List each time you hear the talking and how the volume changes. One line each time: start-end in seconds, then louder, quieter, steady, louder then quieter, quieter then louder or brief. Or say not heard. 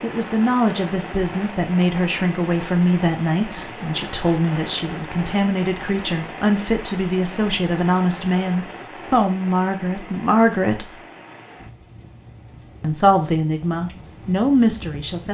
0.0-11.0 steady
12.8-15.3 brief.